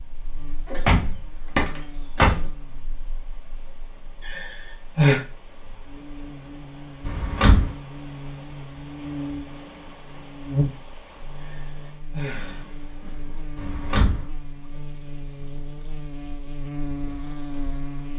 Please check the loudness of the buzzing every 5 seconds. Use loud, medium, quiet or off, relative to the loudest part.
quiet, loud, loud, loud.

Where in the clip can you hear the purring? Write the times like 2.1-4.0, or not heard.
not heard.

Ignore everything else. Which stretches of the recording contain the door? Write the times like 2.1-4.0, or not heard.
0.7-2.4, 7.0-7.7, 13.6-14.2.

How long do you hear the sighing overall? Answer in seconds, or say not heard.
2 s.